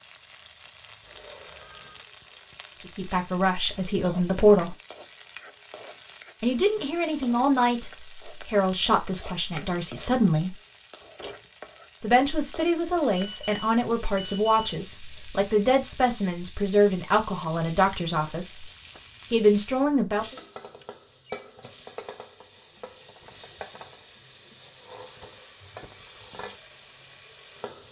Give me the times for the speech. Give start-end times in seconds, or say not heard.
3.0-4.8, 6.4-10.6, 12.0-18.6, 19.3-20.4.